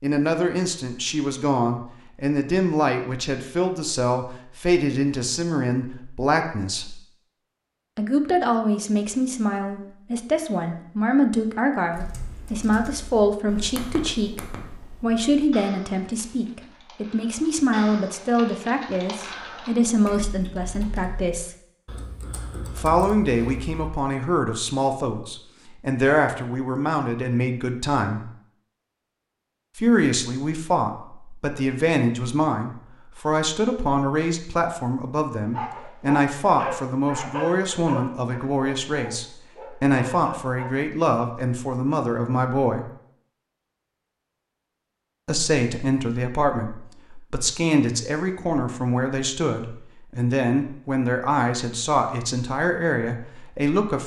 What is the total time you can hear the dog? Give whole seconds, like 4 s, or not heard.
5 s.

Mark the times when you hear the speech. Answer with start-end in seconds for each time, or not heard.
0.0-7.0, 8.0-21.5, 22.7-28.3, 29.8-42.9, 45.2-54.0.